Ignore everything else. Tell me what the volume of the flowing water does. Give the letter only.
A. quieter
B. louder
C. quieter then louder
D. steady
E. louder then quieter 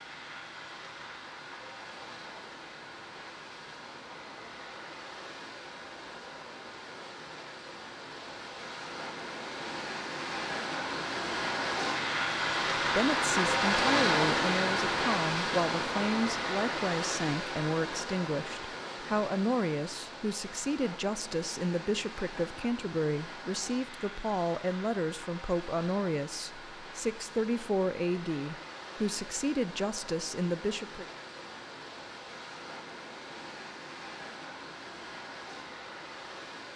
E.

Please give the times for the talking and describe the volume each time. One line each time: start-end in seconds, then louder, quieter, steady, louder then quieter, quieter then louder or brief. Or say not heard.
12.9-31.1 steady.